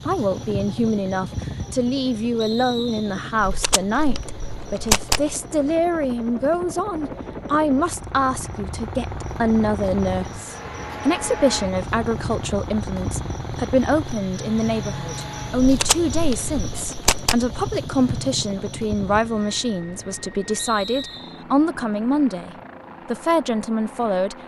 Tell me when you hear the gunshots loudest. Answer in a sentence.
The volume of the gunshots peaks at 5 seconds.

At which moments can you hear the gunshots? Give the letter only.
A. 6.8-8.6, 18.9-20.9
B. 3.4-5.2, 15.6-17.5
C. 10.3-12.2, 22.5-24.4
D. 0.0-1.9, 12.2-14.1
B.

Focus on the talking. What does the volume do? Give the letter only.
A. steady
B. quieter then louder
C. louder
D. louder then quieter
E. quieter
A.